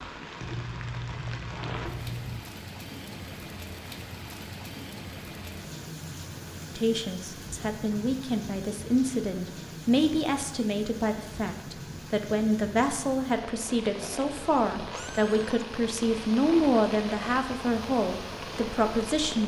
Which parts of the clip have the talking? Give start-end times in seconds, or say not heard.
6.8-19.4.